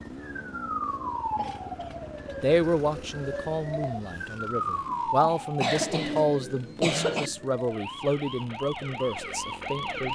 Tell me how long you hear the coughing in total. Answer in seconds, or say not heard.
3 s.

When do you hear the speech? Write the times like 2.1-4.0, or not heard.
2.4-10.1.